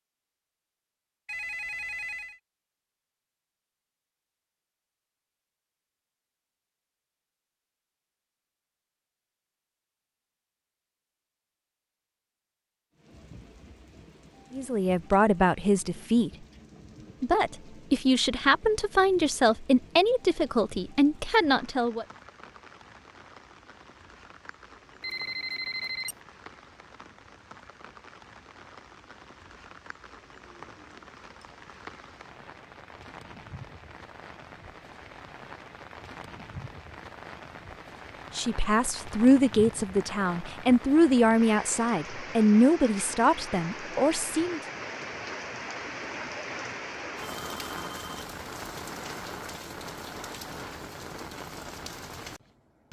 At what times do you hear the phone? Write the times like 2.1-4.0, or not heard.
1.2-2.4, 25.0-26.1, 47.2-48.1.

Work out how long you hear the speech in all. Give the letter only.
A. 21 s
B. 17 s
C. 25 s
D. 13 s
D.